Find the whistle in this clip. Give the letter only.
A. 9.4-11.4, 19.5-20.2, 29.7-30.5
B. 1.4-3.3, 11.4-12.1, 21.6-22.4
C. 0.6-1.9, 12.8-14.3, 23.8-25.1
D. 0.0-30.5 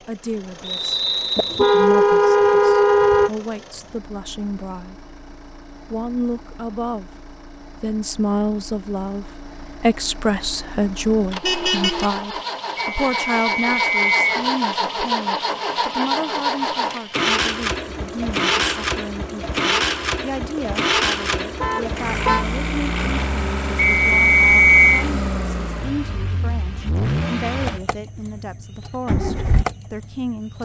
C.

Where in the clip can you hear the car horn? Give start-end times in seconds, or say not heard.
1.4-3.3, 11.4-12.1, 21.6-22.4.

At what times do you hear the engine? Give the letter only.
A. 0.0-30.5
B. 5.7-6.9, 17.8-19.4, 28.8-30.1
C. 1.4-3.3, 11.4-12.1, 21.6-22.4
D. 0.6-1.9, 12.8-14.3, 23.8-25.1
A.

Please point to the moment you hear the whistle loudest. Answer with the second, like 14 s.
25 s.